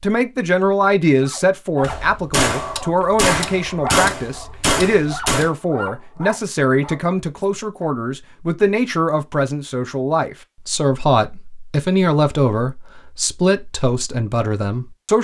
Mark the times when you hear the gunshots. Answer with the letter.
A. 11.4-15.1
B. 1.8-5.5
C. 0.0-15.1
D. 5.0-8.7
B.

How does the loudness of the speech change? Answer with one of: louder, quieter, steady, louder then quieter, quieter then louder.
steady.